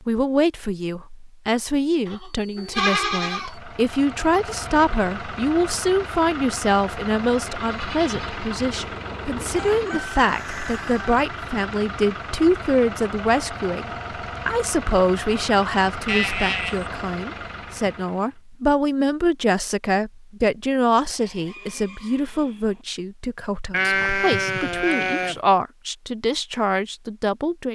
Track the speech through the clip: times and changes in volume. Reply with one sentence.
You can hear the speech from 0.1 to 27.7 s, at a steady volume.